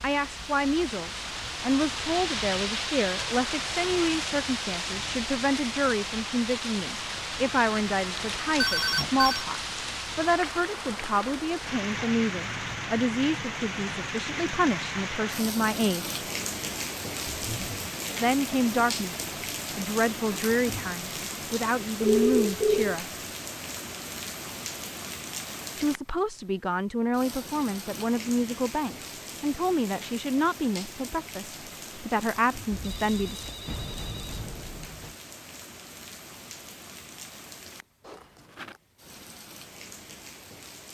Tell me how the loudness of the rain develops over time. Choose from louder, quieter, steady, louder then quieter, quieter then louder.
quieter.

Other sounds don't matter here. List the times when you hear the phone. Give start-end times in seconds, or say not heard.
8.6-9.4, 22.0-22.9, 32.7-35.1.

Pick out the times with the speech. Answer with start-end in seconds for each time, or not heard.
0.0-16.1, 18.2-19.1, 19.8-23.2, 25.8-33.5.